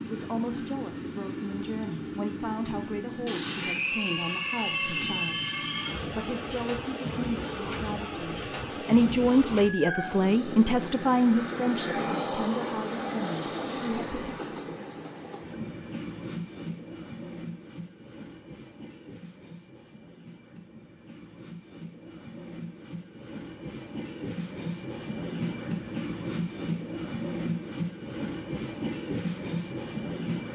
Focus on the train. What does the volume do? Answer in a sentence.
The volume of the train goes down, then up.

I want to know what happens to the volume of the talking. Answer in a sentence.
The loudness of the talking goes up, then down.